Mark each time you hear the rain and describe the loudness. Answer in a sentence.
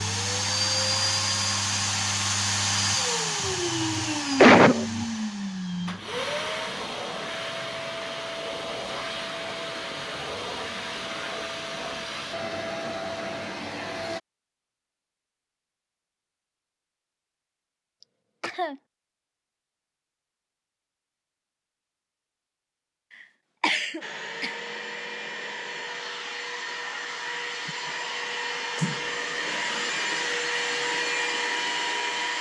You can't hear the rain here.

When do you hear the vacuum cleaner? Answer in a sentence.
You can hear the vacuum cleaner from 0.0 to 14.2 s and from 24.0 to 32.3 s.